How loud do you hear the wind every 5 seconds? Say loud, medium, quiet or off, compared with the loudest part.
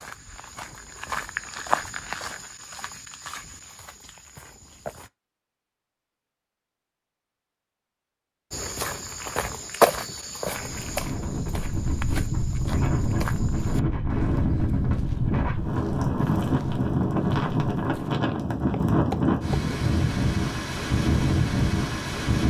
off, off, loud, loud, loud.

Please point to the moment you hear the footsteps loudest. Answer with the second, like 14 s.
10 s.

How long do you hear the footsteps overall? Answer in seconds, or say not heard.
16 s.